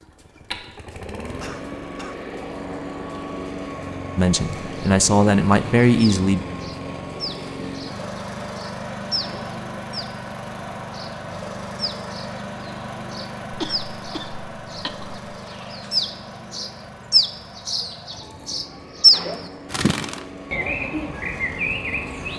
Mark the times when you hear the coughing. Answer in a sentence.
You can hear the coughing from 1.2 to 2.2 s and from 13.5 to 15.2 s.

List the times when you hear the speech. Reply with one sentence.
You can hear the speech from 4.2 to 6.5 s.